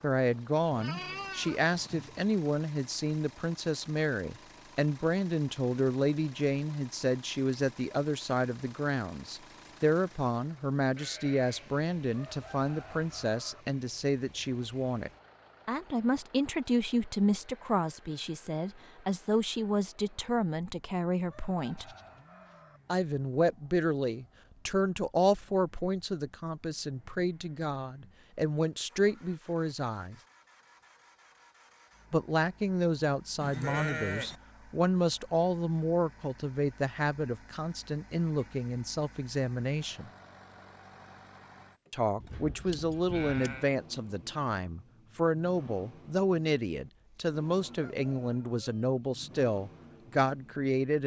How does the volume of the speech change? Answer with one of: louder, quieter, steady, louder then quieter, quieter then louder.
steady.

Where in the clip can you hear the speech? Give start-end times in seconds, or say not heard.
0.0-21.9, 22.9-30.1, 32.1-40.1, 41.9-51.0.